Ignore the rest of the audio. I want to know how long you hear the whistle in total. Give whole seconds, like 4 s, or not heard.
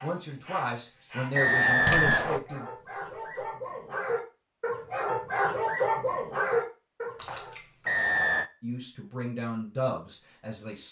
2 s.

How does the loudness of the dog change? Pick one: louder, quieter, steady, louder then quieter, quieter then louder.
louder.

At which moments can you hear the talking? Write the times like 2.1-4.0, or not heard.
0.0-2.6, 8.6-10.8.